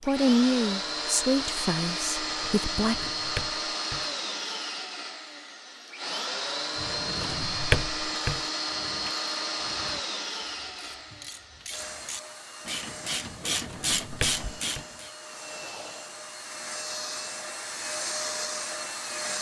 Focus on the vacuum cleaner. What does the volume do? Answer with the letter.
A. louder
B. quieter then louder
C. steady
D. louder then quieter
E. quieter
B.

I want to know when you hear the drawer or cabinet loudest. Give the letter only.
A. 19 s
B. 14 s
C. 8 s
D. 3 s
C.